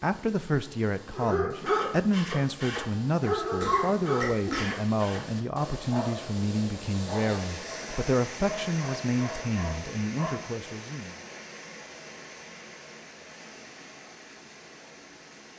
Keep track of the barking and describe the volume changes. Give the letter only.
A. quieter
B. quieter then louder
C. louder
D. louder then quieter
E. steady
A.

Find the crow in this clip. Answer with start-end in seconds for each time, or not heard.
not heard.